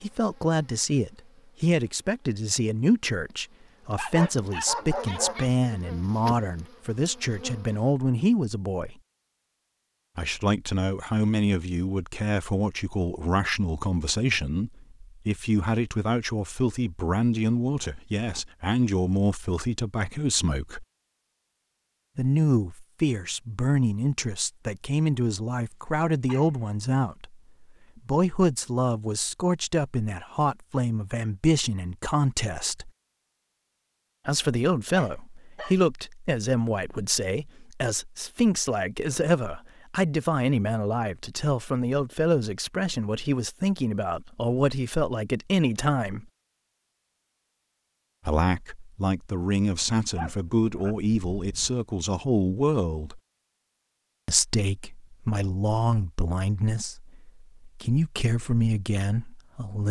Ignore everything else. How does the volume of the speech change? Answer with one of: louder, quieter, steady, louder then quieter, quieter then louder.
steady.